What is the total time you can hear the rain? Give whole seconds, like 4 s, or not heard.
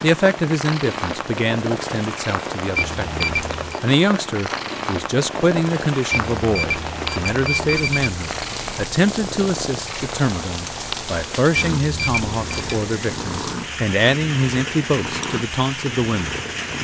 17 s.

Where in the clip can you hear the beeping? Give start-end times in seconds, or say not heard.
2.8-3.8, 6.1-8.1, 11.8-12.8.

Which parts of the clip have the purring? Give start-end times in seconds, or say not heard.
0.0-16.7.